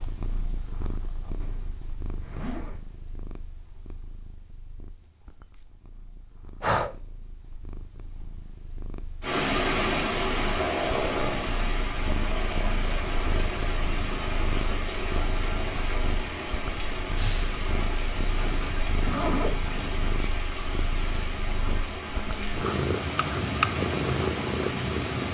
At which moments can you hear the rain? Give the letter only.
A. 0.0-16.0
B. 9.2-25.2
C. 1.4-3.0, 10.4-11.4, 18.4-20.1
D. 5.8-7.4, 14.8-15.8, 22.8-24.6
B.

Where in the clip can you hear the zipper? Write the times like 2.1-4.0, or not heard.
1.4-3.0, 10.4-11.4, 18.4-20.1.